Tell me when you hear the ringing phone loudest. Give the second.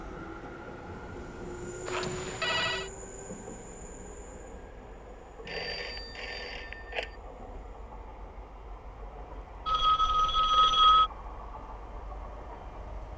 11 s.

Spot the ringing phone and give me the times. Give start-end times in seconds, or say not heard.
1.9-2.9, 5.5-7.1, 9.7-11.1.